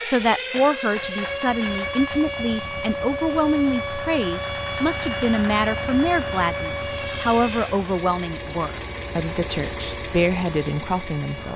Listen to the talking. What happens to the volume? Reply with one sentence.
The volume of the talking stays about the same.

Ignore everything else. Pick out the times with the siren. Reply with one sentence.
You can hear the siren from 0.0 to 11.5 s.